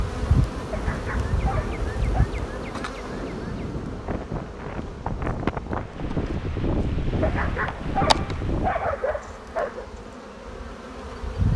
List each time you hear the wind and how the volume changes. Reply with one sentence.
You can hear the wind from 0.0 to 8.8 s, getting louder.